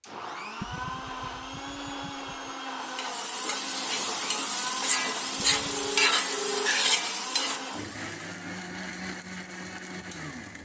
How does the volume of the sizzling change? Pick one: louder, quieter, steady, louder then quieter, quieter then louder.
louder then quieter.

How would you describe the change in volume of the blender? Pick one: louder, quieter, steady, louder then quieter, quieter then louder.
steady.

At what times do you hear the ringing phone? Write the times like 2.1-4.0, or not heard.
5.7-6.9.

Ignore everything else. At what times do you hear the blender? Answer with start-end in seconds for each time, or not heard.
0.0-10.6.